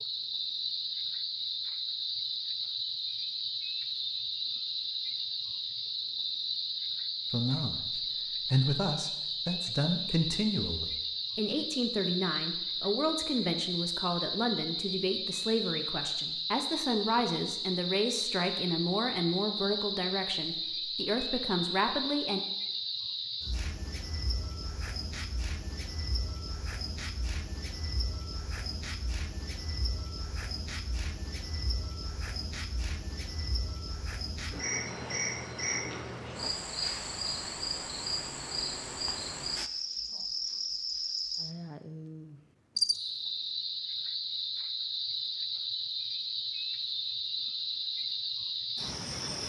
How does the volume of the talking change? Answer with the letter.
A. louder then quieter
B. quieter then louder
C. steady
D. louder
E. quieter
C.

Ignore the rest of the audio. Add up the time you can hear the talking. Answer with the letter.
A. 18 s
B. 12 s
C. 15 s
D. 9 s
C.